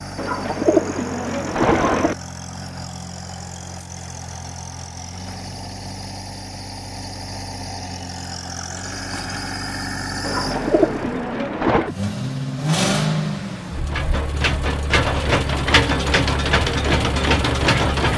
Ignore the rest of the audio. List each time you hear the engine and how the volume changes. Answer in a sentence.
You can hear the engine from 0.0 to 18.1 s, getting louder.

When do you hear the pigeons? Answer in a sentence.
You can hear the pigeons from 0.1 to 2.1 s and from 10.2 to 11.9 s.